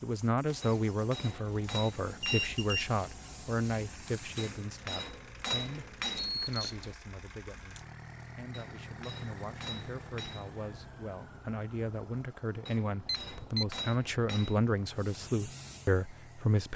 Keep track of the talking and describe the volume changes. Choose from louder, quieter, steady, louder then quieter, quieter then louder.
quieter then louder.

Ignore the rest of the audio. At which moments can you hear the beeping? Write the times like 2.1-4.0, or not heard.
2.2-2.8, 6.2-7.0, 13.1-13.7.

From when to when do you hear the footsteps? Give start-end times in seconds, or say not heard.
not heard.